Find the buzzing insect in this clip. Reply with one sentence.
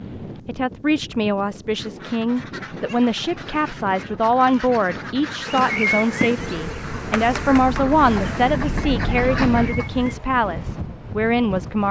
You can hear the buzzing insect from 5.5 to 10.2 s.